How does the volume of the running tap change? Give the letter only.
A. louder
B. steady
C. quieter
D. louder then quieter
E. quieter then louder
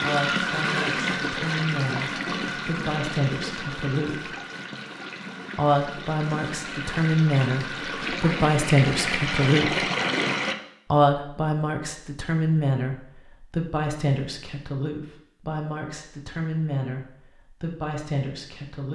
E.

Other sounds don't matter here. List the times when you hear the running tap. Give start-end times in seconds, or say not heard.
0.0-10.6.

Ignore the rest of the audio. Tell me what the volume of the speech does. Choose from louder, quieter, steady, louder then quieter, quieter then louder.
louder then quieter.